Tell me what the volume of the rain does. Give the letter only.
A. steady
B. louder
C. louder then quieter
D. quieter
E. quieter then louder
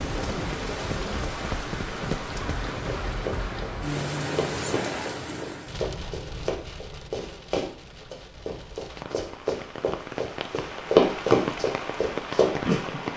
E.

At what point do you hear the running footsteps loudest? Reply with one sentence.
The volume of the running footsteps peaks at 11 seconds.